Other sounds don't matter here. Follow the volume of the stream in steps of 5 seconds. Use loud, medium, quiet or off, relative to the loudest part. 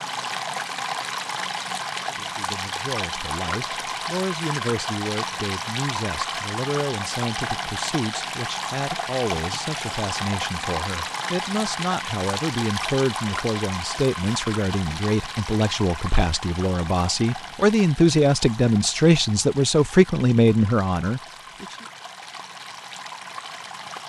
loud, loud, loud, medium, medium.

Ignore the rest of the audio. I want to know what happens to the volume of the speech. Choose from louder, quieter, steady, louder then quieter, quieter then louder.
louder.